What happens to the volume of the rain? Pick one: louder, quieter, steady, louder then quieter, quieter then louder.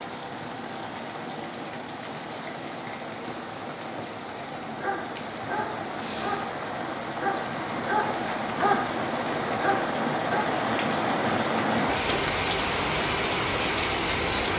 louder.